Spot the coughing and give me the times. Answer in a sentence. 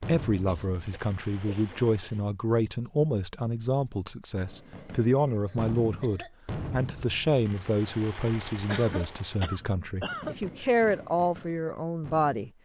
The coughing can be heard from 0.5 to 2.3 s, from 5.5 to 6.3 s and from 8.7 to 10.3 s.